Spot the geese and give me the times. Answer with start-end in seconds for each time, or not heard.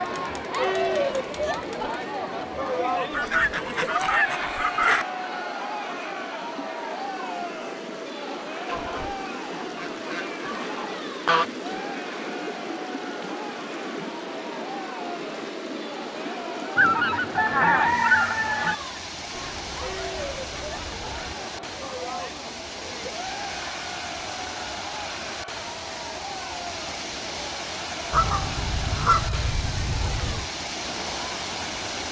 3.1-5.0, 8.7-11.4, 16.8-18.8, 28.1-30.4.